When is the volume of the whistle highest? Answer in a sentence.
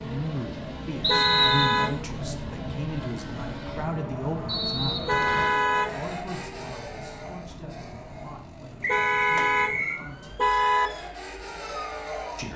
The loudest moment of the whistle is at 1 second.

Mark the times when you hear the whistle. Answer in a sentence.
You can hear the whistle from 1.0 to 1.9 s, from 4.5 to 5.6 s and from 8.8 to 10.0 s.